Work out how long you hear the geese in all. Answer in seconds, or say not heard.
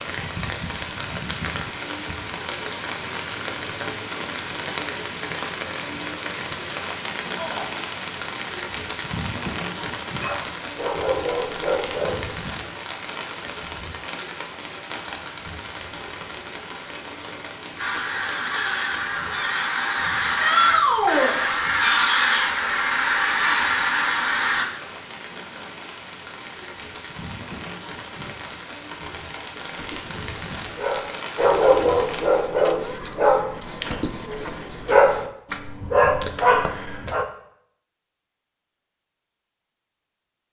7 s.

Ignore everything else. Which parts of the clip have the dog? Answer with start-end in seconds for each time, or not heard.
10.2-12.4, 29.7-37.2.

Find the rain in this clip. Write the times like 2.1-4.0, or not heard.
0.0-32.3.